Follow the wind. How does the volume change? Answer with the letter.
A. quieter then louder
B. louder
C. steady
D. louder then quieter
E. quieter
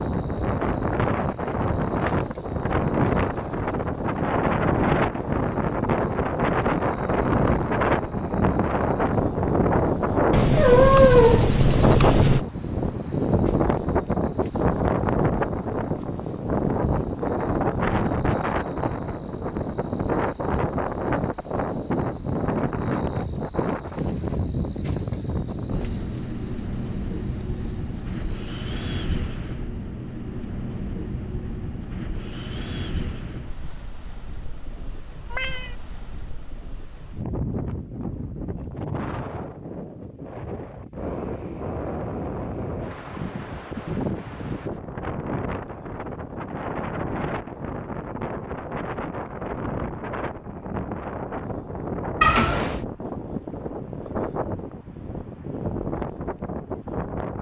E.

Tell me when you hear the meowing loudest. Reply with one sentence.
The loudest moment of the meowing is at 11 seconds.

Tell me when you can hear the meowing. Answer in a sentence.
You can hear the meowing from 10.3 to 12.4 s, from 35.3 to 35.8 s and from 52.2 to 52.8 s.